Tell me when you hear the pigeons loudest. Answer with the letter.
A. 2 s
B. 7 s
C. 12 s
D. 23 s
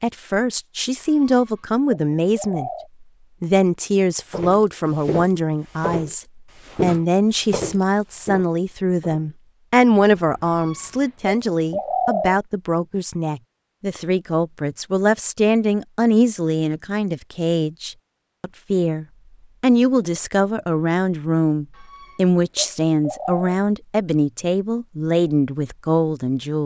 C.